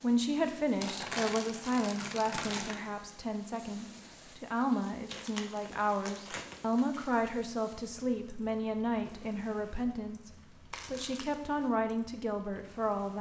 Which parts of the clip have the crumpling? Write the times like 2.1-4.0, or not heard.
0.8-2.8, 5.0-7.1, 10.7-11.3.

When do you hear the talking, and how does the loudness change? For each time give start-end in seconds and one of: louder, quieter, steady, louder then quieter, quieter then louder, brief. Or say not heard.
0.0-13.1 steady.